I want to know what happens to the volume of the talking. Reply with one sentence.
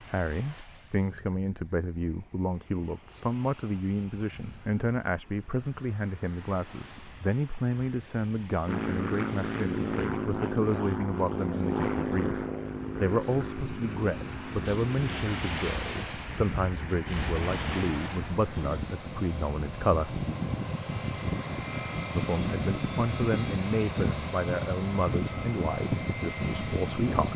The volume of the talking stays about the same.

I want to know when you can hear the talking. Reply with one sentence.
The talking can be heard from 0.0 to 20.2 s and from 22.1 to 27.3 s.